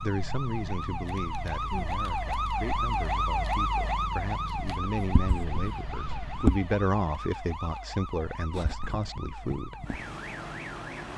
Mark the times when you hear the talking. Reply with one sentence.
The talking can be heard from 0.0 to 9.8 s.